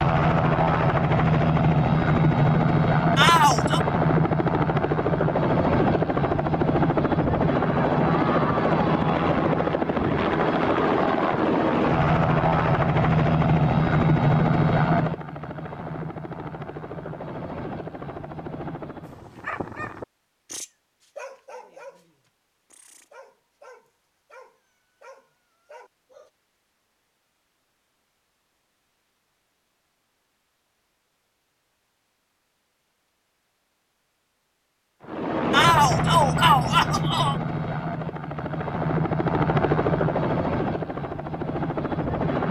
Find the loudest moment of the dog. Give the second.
20 s.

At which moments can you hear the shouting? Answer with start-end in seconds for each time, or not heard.
3.1-3.8, 35.5-37.4.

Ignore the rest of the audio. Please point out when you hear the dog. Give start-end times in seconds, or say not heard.
19.1-26.3.